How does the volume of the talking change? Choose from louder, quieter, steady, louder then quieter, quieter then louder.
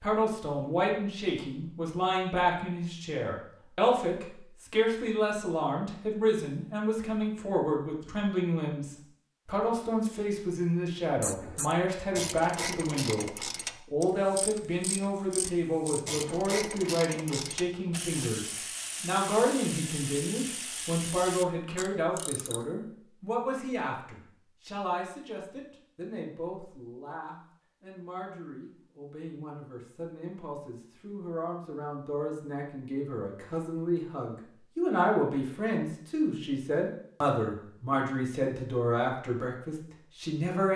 quieter then louder.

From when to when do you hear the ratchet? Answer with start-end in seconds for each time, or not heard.
11.2-22.6.